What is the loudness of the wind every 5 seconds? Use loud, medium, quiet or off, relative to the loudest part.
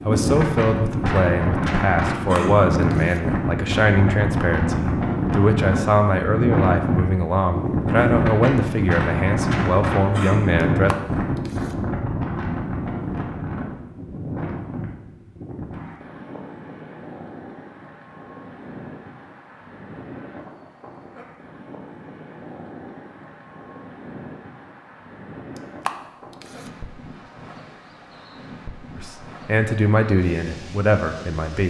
loud, loud, loud, quiet, quiet, quiet, quiet.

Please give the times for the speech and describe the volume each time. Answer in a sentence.
You can hear the speech from 0.0 to 10.9 s, at a steady volume; and briefly from 28.9 to 31.6 s.